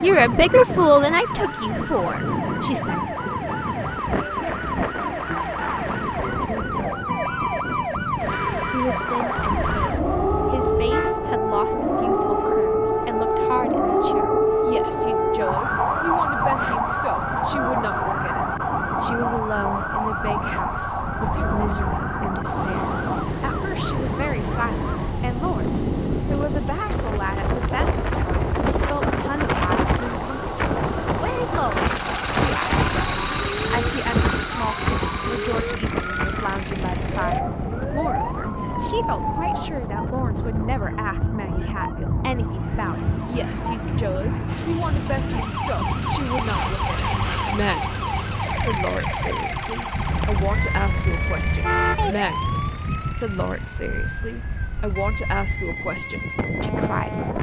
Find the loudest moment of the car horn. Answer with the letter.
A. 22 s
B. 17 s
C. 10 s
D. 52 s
D.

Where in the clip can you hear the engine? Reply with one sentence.
You can hear the engine from 22.5 to 37.4 s and from 44.5 to 57.3 s.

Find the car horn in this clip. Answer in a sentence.
You can hear the car horn from 9.3 to 11.2 s, from 21.3 to 21.9 s and from 50.1 to 52.1 s.